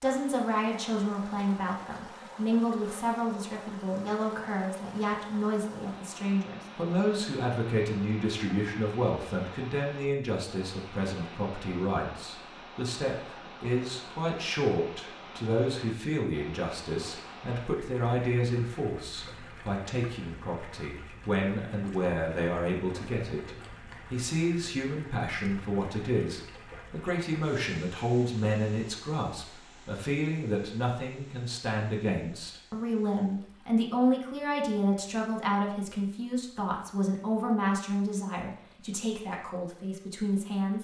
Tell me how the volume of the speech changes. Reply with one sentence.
The volume of the speech stays about the same.